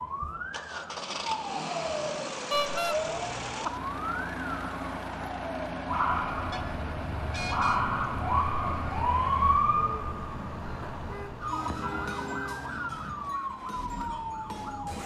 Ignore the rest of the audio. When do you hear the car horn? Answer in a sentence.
The car horn can be heard from 2.5 to 3.0 s, from 6.5 to 7.8 s and from 10.9 to 12.6 s.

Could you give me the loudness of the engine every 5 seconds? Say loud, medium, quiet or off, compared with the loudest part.
loud, loud, medium.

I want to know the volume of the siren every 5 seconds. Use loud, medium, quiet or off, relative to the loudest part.
medium, loud, medium.